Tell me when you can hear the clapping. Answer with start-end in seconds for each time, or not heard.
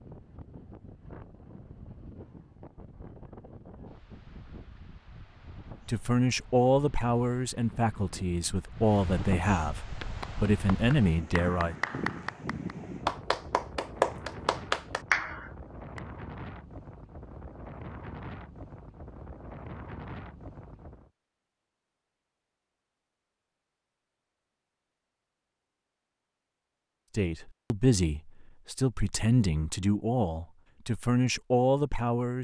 9.8-16.0.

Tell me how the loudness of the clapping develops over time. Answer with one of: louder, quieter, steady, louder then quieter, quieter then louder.
louder.